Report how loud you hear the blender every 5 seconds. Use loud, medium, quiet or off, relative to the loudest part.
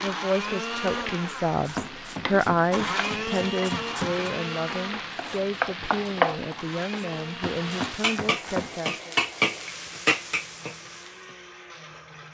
loud, medium, quiet.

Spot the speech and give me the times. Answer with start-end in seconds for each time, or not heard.
0.0-9.2.